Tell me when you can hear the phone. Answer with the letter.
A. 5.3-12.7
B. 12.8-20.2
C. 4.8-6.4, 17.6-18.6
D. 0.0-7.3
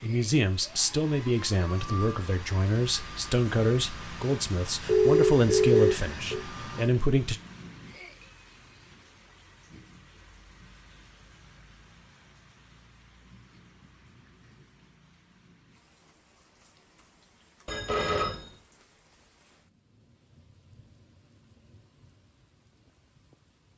C.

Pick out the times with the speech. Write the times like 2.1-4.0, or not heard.
0.0-7.3.